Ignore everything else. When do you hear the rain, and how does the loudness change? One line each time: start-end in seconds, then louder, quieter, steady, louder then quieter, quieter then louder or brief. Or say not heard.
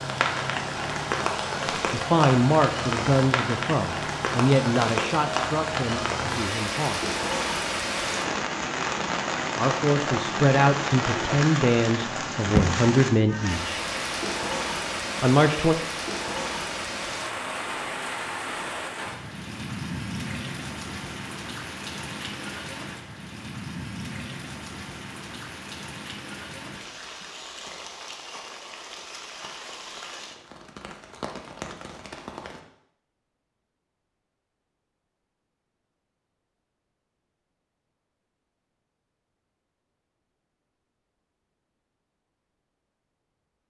0.0-32.6 quieter.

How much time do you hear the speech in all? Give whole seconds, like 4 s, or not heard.
10 s.